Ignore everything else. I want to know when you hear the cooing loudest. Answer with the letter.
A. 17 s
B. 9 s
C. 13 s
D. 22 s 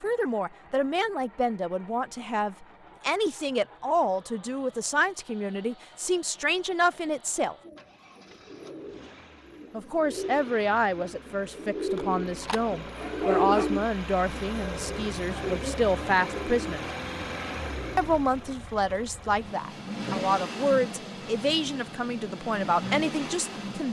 C.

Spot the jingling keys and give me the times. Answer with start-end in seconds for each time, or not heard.
not heard.